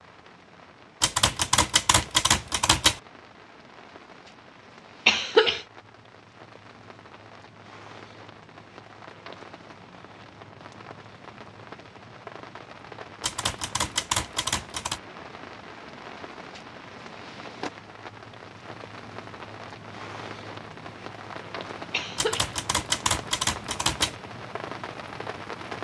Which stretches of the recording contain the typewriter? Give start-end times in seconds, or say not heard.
1.0-3.0, 13.2-15.0, 22.1-24.1.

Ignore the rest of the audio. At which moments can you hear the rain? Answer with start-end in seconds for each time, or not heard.
0.0-25.7.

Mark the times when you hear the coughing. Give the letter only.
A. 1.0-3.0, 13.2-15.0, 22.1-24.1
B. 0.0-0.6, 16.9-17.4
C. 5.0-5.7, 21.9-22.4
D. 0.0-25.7
C.